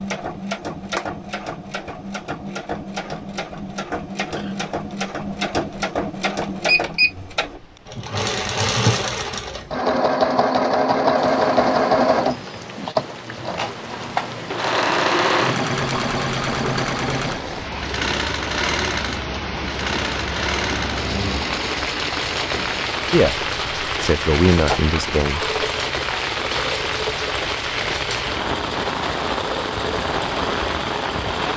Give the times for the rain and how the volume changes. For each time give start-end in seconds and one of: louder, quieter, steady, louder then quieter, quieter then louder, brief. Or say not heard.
11.2-31.5 louder.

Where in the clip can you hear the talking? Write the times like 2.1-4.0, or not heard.
23.1-25.4.